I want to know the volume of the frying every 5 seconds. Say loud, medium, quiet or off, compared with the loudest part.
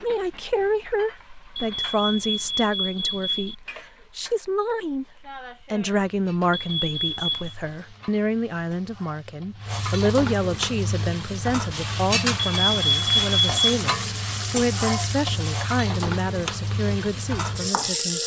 quiet, quiet, loud, loud.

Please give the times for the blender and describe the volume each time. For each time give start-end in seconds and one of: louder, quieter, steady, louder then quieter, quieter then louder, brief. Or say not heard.
not heard.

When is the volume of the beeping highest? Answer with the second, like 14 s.
13 s.